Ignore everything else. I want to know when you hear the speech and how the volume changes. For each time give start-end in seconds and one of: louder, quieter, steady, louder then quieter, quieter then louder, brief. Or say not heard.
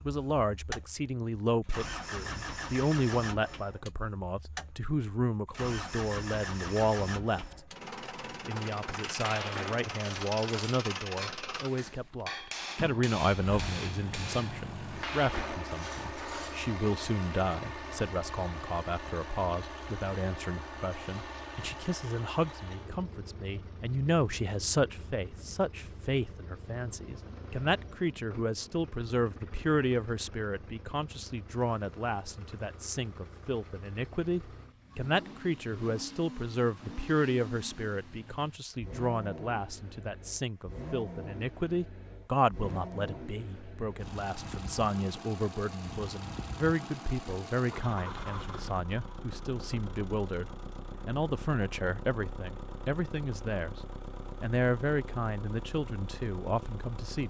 0.0-7.7 steady
8.4-53.8 steady
54.4-57.2 brief.